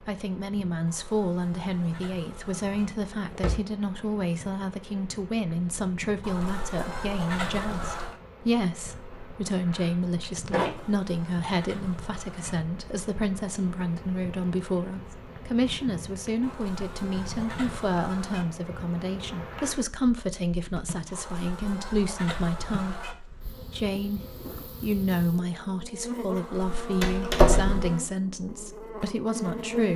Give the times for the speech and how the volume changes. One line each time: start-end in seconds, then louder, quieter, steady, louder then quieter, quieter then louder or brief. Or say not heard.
0.0-29.9 steady.